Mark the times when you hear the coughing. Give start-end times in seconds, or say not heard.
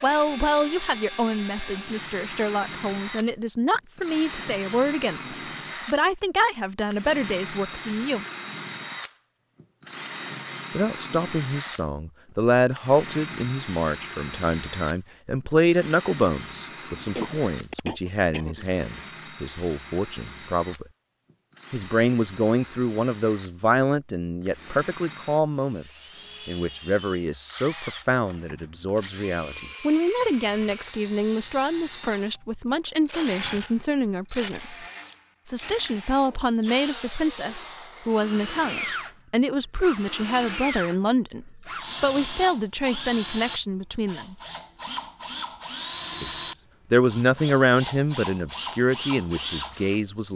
17.1-18.6.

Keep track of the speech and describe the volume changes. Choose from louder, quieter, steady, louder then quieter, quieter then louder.
steady.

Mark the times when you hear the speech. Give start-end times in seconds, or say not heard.
0.0-8.2, 10.8-20.9, 21.7-34.8, 35.5-44.4, 46.2-50.3.